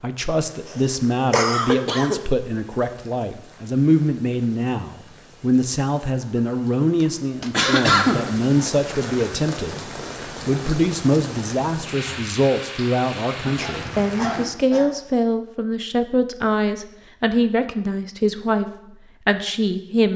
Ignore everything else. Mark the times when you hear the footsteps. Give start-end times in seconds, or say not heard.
not heard.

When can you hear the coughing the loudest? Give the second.
8 s.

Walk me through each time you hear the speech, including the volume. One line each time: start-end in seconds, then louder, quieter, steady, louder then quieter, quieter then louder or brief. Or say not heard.
0.0-20.1 steady.